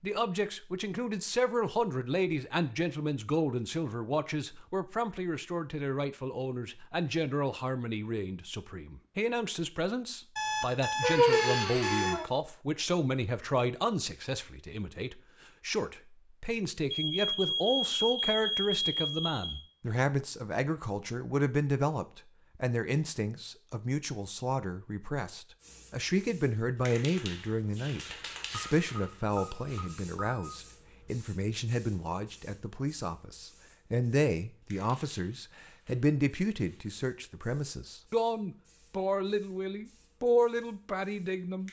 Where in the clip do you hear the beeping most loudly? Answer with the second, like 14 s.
11 s.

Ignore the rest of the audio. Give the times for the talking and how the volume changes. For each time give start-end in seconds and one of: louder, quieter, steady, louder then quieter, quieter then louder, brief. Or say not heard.
0.0-41.6 steady.